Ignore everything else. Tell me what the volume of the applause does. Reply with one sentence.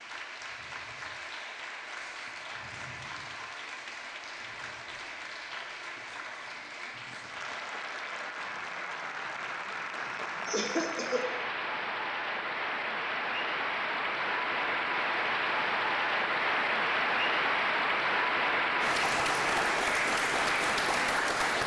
The loudness of the applause goes up.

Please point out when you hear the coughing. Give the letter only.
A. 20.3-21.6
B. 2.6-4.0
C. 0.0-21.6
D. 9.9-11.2
D.